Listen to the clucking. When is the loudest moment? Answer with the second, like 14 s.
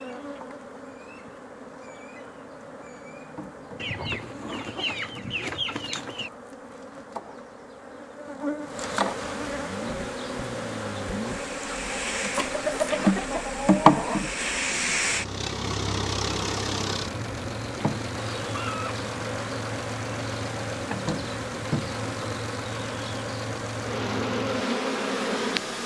13 s.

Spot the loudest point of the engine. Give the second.
15 s.